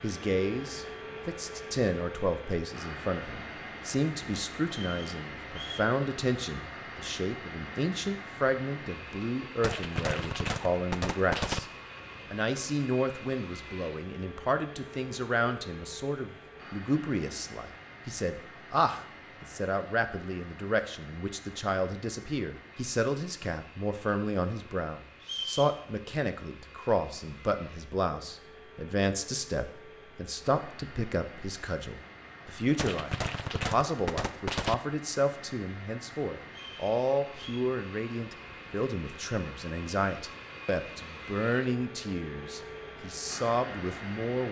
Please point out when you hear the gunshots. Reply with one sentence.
You can hear the gunshots from 9.6 to 11.6 s and from 32.8 to 34.8 s.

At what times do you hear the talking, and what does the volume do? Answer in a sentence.
You can hear the talking from 0.0 to 11.7 s, at a steady volume; and from 12.3 to 44.4 s, at a steady volume.